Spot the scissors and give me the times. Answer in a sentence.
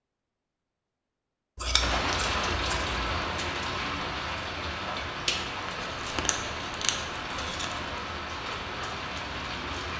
You can hear the scissors from 1.6 to 3.0 s and from 5.7 to 7.9 s.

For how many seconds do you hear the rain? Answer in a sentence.
You can hear the rain for 8 seconds altogether.